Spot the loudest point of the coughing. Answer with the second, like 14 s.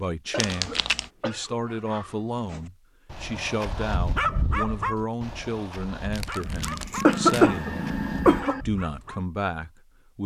7 s.